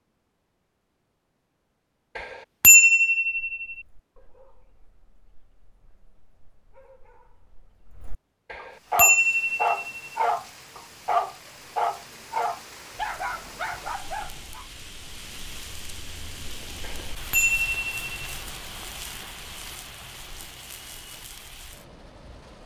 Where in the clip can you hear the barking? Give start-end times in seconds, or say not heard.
3.2-14.7.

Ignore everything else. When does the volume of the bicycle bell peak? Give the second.
3 s.